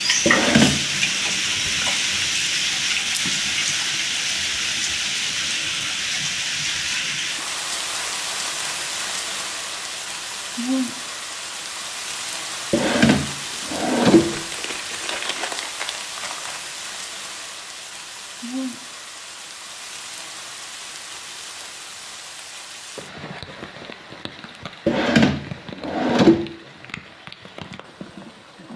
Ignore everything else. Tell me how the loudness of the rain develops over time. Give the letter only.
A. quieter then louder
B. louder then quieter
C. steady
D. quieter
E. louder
D.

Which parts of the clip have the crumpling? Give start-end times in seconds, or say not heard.
14.2-16.6.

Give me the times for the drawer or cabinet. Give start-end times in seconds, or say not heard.
0.2-0.8, 12.7-14.3, 24.9-26.4.